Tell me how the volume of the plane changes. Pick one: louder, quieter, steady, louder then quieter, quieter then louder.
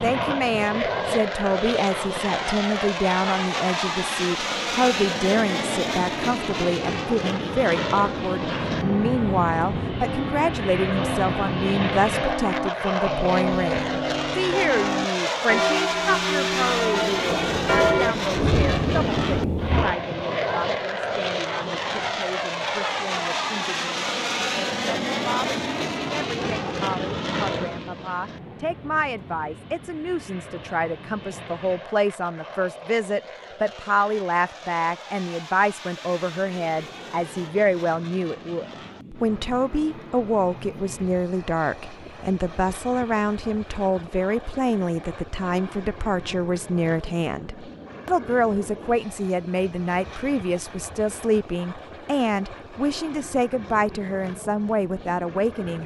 quieter.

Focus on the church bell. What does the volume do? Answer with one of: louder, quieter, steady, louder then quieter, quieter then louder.
louder.